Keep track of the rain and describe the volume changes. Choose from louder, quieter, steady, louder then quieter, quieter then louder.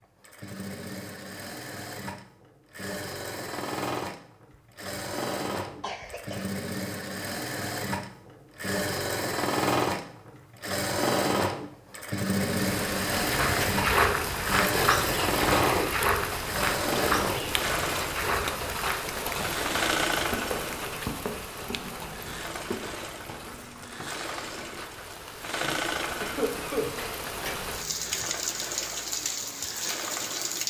quieter then louder.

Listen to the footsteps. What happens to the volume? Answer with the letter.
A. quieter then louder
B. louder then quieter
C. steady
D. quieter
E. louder
D.